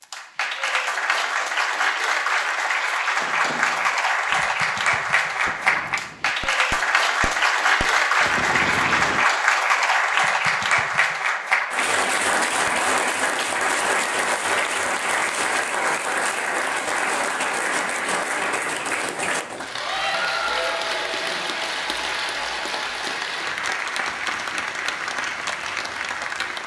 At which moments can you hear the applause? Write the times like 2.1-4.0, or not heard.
0.0-26.6.